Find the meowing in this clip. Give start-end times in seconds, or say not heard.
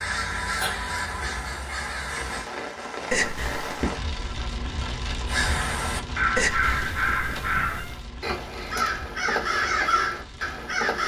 3.1-3.9, 6.3-8.0.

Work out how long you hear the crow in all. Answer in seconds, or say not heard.
8 s.